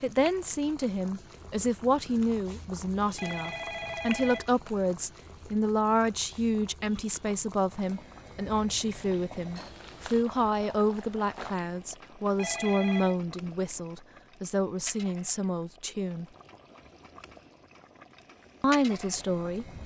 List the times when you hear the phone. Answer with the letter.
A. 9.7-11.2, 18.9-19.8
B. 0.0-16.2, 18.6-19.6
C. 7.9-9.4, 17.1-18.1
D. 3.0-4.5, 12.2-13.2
D.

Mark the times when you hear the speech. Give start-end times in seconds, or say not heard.
0.0-16.2, 18.6-19.6.